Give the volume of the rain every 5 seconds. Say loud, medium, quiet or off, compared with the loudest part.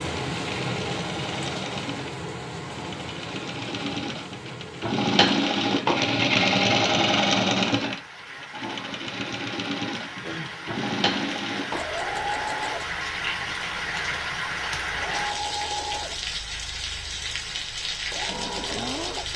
loud, medium, loud, loud.